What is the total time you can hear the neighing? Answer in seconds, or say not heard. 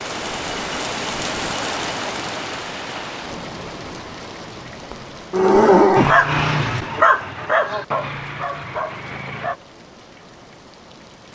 2 s.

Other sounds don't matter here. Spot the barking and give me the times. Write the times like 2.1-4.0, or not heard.
6.0-9.6.